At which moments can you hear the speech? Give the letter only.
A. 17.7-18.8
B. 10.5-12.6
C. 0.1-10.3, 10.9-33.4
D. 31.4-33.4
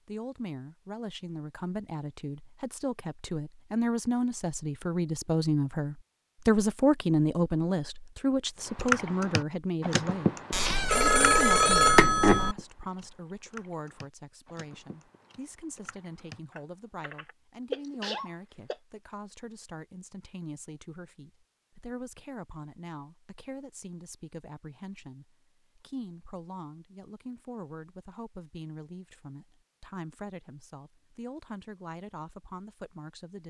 C.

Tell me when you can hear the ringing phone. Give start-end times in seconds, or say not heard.
10.5-12.6.